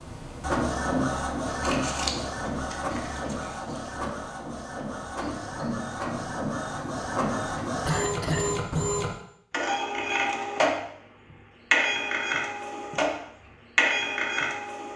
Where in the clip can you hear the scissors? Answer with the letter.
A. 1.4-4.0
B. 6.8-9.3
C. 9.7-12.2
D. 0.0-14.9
A.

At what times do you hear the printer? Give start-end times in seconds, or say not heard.
0.0-14.9.